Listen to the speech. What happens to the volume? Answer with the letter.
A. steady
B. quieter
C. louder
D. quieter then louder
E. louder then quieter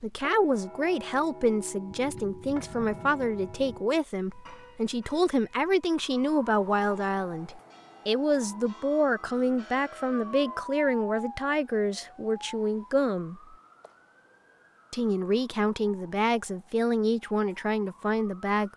A.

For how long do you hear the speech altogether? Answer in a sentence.
You can hear the speech for 17 seconds altogether.